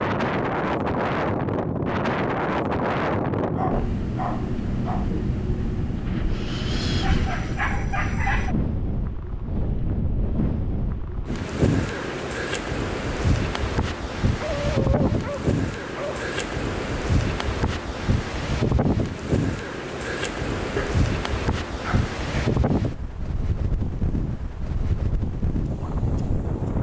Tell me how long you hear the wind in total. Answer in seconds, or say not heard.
27 s.